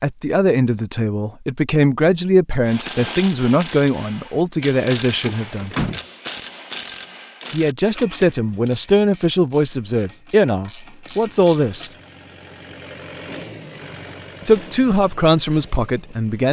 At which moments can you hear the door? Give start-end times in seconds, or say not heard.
5.2-6.0.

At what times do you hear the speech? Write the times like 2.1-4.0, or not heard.
0.0-5.8, 7.5-11.9, 14.4-16.4.